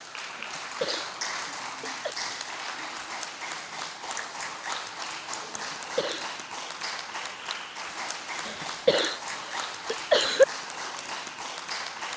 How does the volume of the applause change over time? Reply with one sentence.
The volume of the applause stays about the same.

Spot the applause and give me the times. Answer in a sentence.
You can hear the applause from 0.0 to 12.1 s.